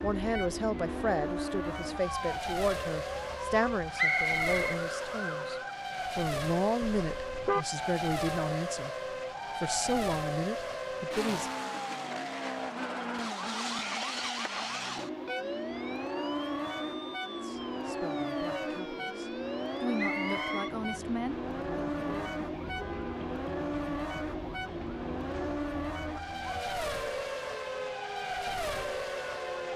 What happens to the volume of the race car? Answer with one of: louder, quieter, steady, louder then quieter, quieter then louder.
steady.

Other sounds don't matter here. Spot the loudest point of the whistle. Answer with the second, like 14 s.
4 s.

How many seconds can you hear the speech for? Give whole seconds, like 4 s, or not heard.
15 s.